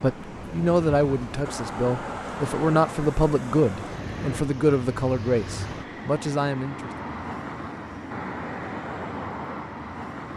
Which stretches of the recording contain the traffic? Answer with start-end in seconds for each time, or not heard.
0.0-10.3.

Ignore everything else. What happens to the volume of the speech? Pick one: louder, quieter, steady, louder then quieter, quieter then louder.
steady.